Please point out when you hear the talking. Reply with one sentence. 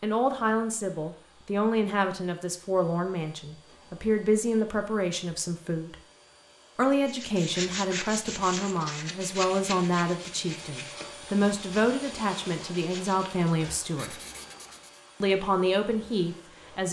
The talking can be heard from 0.0 to 6.0 s, from 6.8 to 14.2 s and from 15.2 to 16.8 s.